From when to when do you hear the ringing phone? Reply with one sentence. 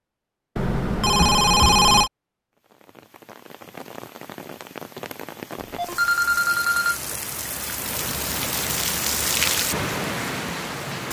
The ringing phone can be heard from 0.6 to 2.1 s and from 5.6 to 7.0 s.